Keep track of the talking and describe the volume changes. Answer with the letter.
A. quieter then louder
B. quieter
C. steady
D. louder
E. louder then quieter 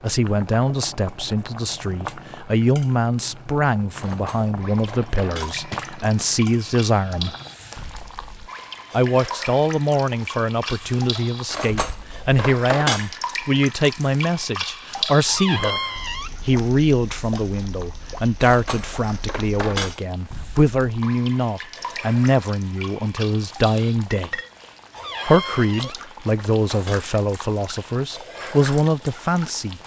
C.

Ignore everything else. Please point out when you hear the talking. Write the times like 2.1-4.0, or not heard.
0.0-7.3, 8.9-15.8, 16.4-24.4, 25.2-29.8.